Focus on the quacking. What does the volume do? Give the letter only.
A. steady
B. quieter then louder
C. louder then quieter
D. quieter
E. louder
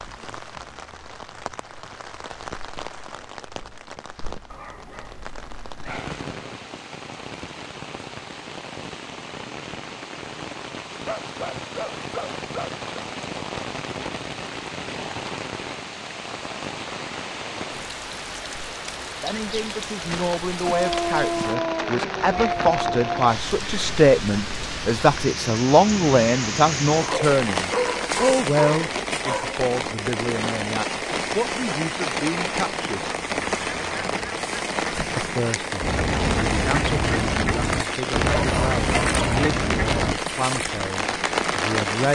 E.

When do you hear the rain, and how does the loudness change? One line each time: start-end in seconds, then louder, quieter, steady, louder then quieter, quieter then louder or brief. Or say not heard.
0.0-42.1 louder.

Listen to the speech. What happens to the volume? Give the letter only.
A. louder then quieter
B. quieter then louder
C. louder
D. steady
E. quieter
A.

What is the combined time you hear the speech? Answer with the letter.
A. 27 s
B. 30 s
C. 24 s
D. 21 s
D.